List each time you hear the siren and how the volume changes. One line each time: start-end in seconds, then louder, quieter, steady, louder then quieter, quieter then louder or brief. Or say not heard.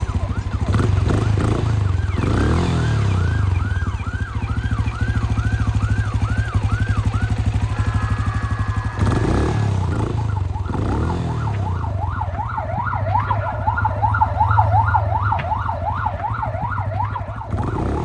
0.0-17.9 louder.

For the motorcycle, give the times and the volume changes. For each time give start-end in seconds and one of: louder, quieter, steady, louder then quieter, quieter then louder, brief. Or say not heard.
0.0-17.9 quieter.